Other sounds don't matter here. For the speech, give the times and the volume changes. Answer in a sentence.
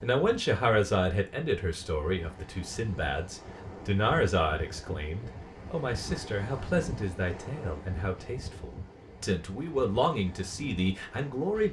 You can hear the speech from 0.0 to 11.6 s, getting quieter then louder.